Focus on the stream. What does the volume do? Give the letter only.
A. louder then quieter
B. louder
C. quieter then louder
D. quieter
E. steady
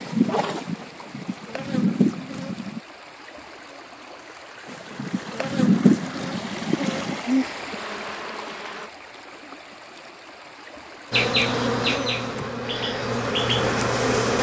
A.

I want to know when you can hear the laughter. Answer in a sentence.
The laughter can't be heard in this clip.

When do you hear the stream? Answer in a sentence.
You can hear the stream from 0.0 to 11.3 s.